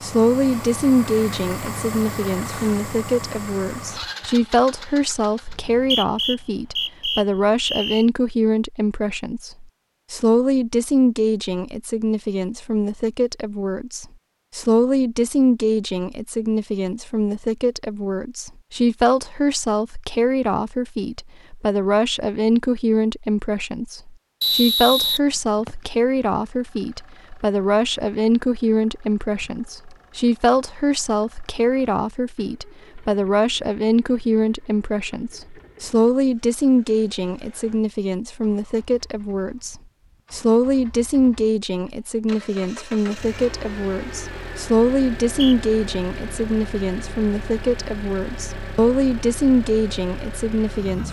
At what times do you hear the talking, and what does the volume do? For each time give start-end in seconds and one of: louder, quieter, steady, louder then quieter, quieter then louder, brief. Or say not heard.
0.0-51.0 steady.